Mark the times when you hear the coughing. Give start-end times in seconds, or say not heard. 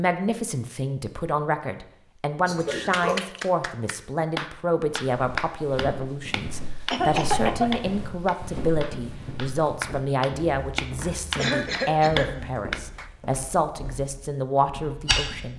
2.5-3.2, 6.9-7.8, 11.3-12.6.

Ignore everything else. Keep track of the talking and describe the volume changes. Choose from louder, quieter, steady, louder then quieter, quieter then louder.
steady.